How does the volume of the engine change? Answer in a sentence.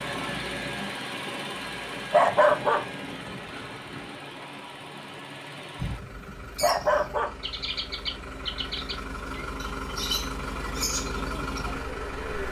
The loudness of the engine goes down, then up.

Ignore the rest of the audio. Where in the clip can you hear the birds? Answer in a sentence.
The birds can be heard from 5.8 to 12.4 s.